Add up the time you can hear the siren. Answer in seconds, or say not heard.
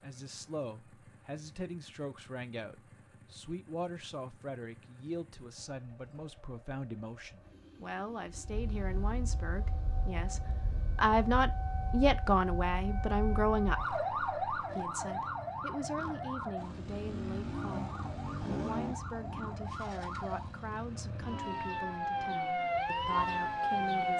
16 s.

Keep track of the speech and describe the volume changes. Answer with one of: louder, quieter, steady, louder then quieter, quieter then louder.
louder then quieter.